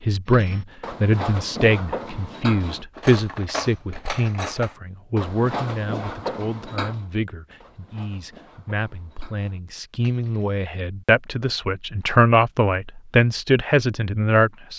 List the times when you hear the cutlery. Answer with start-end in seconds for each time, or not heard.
0.2-10.7.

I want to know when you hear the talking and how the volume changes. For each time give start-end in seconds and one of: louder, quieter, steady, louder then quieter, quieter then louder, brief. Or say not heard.
0.0-14.7 quieter then louder.